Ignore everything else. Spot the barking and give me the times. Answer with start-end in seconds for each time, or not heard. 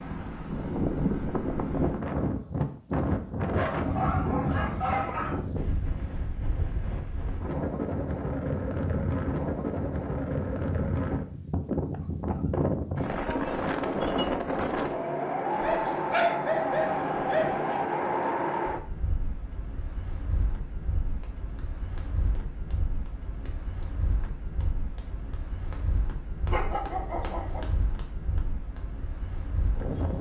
3.5-5.4, 15.6-17.8, 26.5-27.6.